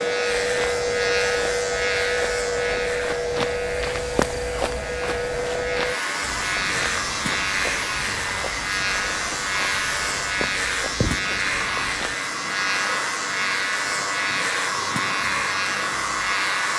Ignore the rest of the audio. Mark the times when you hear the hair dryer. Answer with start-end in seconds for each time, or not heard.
0.0-16.7.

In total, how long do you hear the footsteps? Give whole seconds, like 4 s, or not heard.
12 s.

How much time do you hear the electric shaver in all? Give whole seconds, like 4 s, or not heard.
17 s.